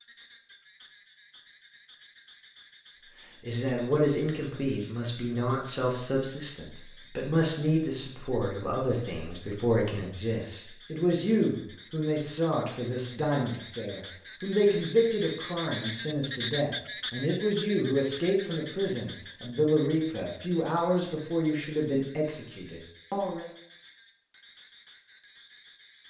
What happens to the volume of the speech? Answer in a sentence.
The volume of the speech stays about the same.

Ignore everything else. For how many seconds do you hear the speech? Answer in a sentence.
You can hear the speech for 20 seconds altogether.